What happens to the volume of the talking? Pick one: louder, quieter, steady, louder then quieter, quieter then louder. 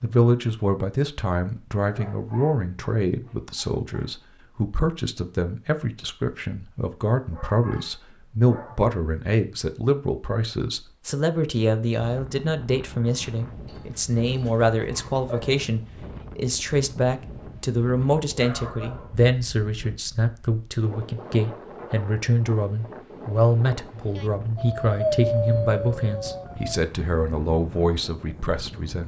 steady.